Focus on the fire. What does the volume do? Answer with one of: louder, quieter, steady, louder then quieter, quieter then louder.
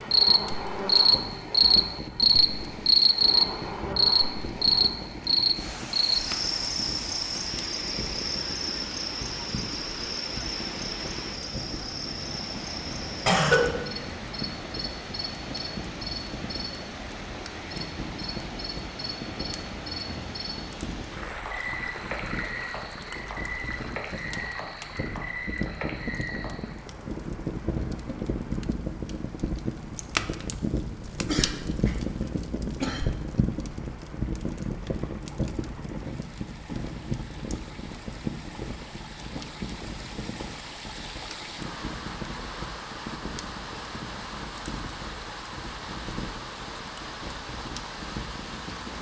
louder then quieter.